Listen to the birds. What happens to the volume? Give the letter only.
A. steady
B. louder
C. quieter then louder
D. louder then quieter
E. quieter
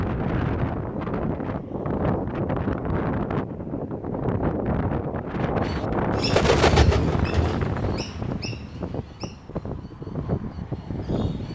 E.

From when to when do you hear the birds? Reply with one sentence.
You can hear the birds from 5.7 to 11.4 s.